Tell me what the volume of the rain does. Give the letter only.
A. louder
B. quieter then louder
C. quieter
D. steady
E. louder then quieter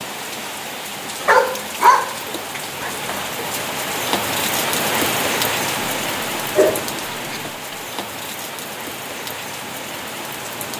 E.